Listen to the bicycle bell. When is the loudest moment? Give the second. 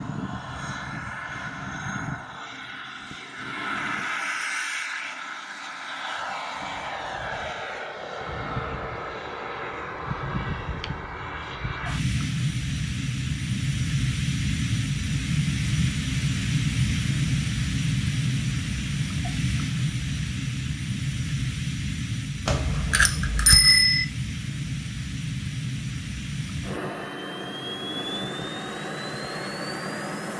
24 s.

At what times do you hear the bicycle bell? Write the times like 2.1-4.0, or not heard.
22.4-24.1.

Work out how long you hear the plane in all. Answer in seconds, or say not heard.
30 s.